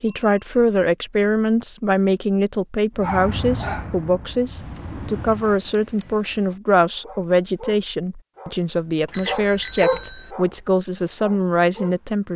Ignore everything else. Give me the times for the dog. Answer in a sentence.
You can hear the dog from 3.0 to 5.5 s and from 7.0 to 12.3 s.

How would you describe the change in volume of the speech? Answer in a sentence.
The loudness of the speech stays about the same.